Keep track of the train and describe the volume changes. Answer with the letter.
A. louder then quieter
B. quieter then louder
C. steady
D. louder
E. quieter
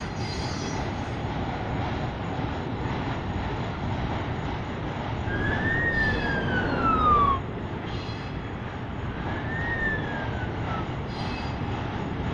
C.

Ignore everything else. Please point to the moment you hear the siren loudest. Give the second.
7 s.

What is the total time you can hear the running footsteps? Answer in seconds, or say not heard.
not heard.